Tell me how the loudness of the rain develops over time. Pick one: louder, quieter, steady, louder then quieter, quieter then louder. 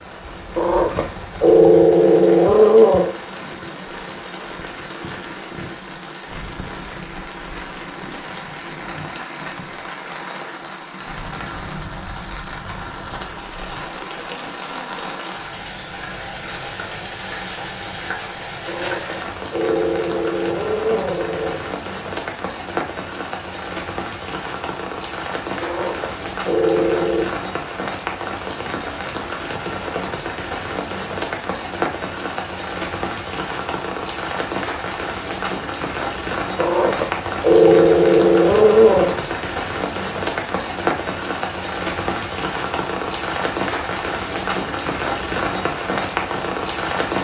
louder.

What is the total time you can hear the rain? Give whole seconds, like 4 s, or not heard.
47 s.